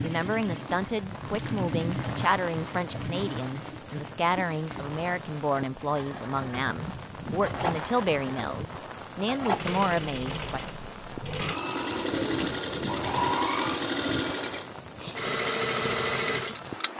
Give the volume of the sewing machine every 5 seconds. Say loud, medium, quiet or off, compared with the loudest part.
medium, medium, loud, loud.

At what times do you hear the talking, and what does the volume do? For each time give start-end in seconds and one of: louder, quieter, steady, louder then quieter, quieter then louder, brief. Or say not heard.
0.0-10.6 steady.